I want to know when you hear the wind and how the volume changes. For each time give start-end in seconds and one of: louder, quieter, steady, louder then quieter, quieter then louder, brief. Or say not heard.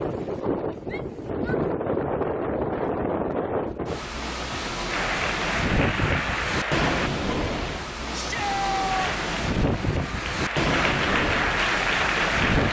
0.0-12.6 steady.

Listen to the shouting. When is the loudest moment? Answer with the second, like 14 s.
9 s.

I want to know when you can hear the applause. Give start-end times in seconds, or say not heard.
4.9-7.1, 8.9-12.6.